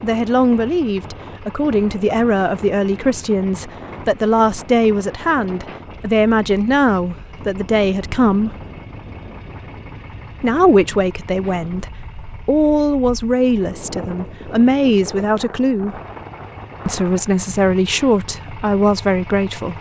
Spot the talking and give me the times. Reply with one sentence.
You can hear the talking from 0.0 to 8.6 s, from 10.4 to 16.0 s and from 16.9 to 19.7 s.